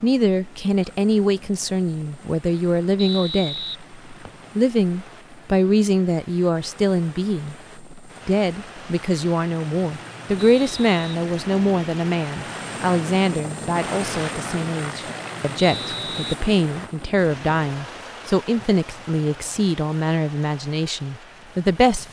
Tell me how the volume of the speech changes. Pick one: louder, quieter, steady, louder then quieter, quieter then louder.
steady.